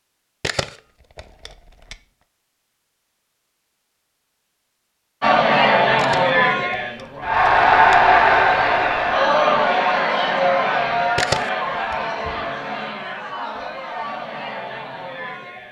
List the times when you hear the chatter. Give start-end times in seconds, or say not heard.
5.2-15.6.